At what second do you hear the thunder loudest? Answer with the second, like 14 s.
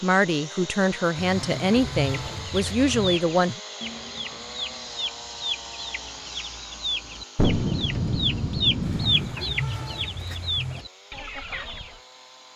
8 s.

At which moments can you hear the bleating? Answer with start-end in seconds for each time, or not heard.
1.1-3.2, 8.8-10.8.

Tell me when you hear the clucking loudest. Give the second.
9 s.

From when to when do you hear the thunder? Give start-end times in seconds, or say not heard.
7.3-9.3.